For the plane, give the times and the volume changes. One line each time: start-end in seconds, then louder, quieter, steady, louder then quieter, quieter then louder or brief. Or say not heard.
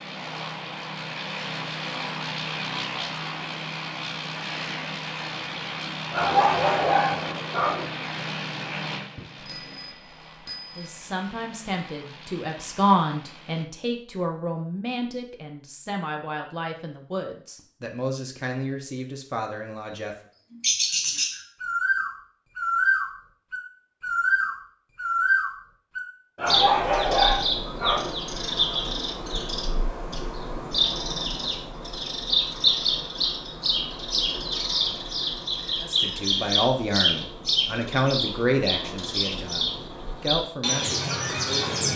0.0-13.7 quieter.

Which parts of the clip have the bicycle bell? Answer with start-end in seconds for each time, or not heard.
9.2-11.1.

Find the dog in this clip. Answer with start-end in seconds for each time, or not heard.
6.1-7.9, 26.4-28.1.